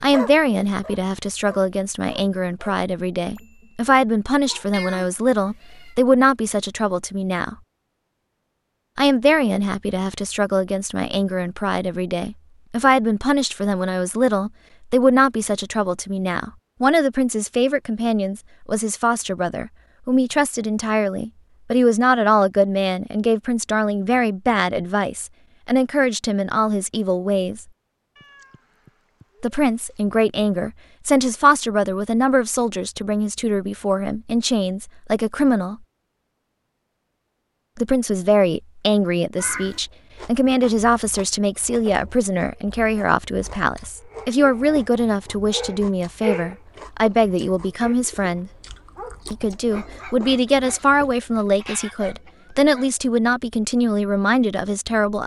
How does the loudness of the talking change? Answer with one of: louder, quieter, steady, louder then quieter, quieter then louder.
steady.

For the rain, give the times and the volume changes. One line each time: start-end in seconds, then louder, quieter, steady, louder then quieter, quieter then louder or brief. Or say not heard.
not heard.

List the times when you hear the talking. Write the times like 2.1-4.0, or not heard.
0.0-7.5, 8.9-27.6, 29.4-35.8, 37.8-48.5, 49.3-55.2.